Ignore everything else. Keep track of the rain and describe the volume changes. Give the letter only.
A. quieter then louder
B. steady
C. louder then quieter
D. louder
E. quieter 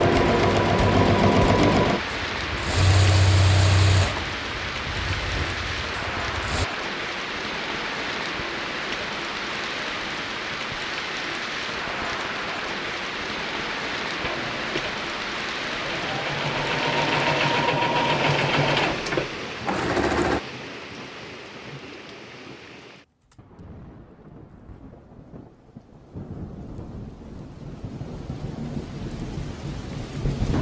E.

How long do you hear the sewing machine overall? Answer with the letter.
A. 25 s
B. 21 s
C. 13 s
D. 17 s
C.